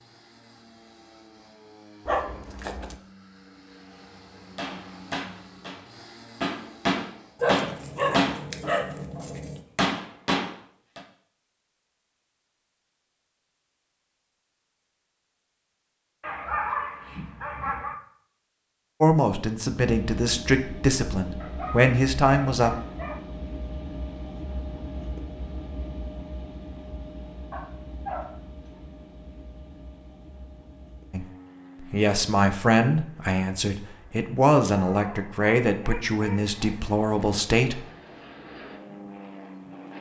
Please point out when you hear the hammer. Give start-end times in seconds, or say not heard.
4.5-11.0.